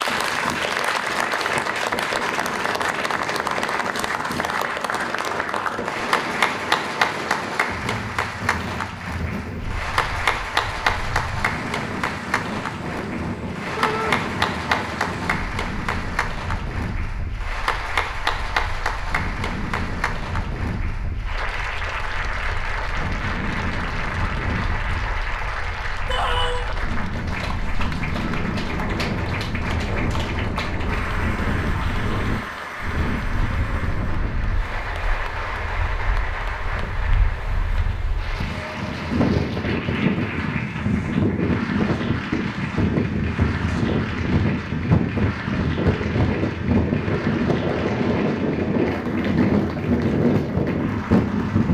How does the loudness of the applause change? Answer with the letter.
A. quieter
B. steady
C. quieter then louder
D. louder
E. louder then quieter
A.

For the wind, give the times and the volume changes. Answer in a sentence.
The wind can be heard from 0.0 to 51.6 s, getting louder.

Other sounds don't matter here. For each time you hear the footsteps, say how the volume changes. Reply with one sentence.
You can't hear the footsteps here.